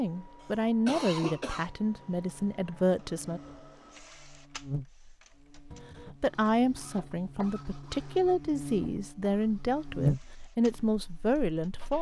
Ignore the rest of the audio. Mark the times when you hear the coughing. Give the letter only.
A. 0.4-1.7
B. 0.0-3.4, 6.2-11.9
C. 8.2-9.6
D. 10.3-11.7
A.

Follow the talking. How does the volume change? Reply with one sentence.
The loudness of the talking stays about the same.